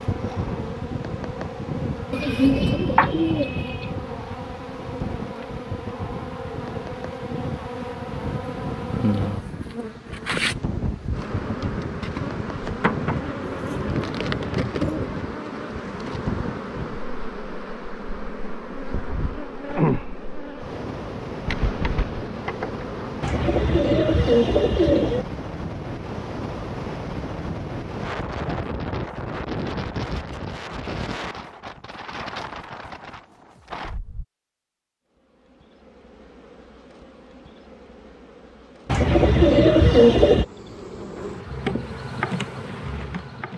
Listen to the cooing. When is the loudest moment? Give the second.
40 s.